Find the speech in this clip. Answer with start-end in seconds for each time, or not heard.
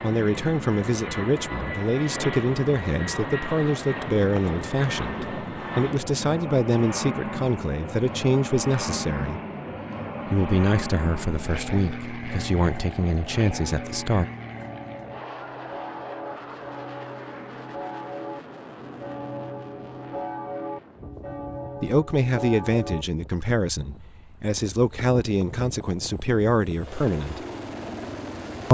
0.0-9.4, 10.2-14.2, 21.8-27.4.